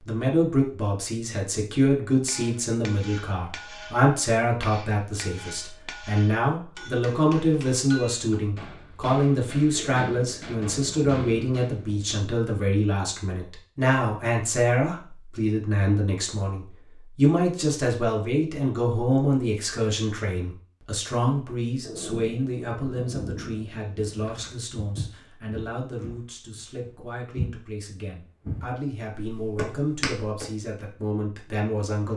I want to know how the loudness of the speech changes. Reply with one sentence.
The loudness of the speech goes down.